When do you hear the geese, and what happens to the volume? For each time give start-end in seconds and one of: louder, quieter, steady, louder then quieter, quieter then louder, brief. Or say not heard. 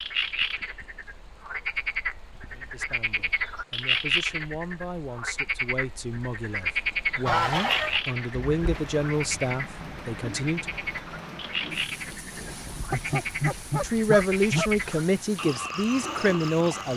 7.2-14.8 quieter then louder.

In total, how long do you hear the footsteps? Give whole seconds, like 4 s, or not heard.
not heard.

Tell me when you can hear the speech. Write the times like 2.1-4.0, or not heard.
2.5-10.7, 13.8-16.9.